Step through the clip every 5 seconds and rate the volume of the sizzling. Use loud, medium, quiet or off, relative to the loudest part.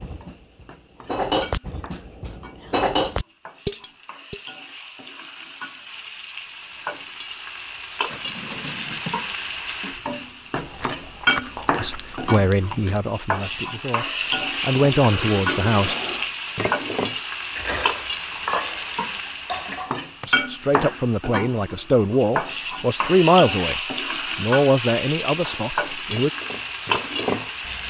quiet, medium, loud, loud, loud, loud.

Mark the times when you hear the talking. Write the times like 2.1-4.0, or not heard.
11.8-15.9, 20.2-26.3.